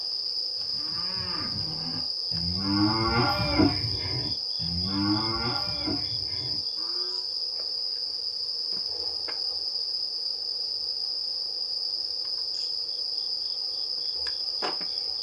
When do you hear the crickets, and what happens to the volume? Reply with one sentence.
The crickets can be heard from 0.0 to 15.1 s, at a steady volume.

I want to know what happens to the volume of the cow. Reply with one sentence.
The loudness of the cow goes up, then down.